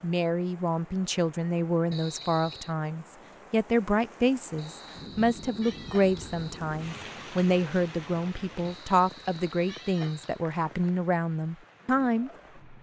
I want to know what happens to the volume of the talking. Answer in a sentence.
The loudness of the talking stays about the same.